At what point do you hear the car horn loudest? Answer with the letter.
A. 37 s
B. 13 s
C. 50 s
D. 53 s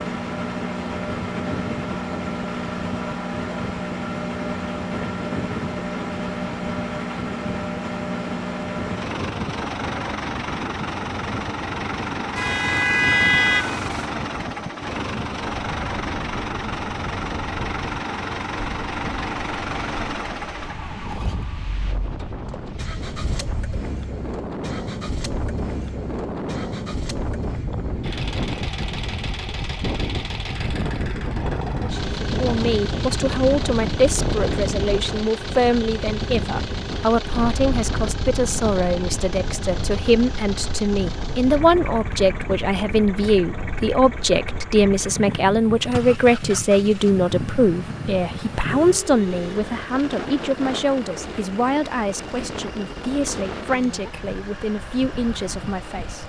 B.